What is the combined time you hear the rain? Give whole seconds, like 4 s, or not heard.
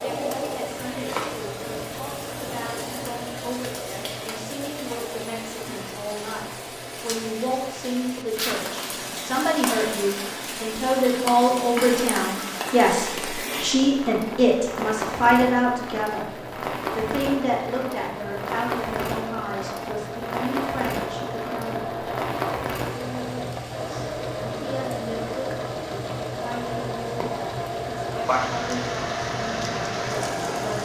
31 s.